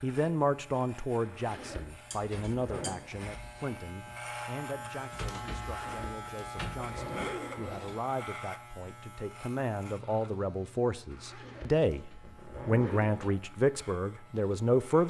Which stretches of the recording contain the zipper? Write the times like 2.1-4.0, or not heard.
1.2-3.0, 5.7-7.9, 11.1-13.3.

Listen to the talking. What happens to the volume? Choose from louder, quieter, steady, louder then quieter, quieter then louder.
quieter then louder.